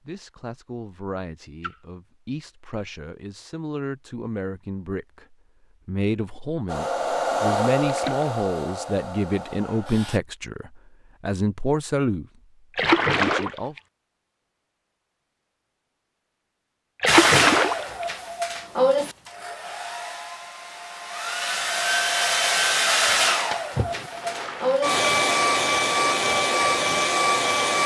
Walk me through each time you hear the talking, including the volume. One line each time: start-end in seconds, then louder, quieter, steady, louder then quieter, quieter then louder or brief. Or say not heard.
0.1-12.2 louder
13.2-13.8 brief.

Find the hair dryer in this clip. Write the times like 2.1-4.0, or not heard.
6.7-10.2, 17.1-27.8.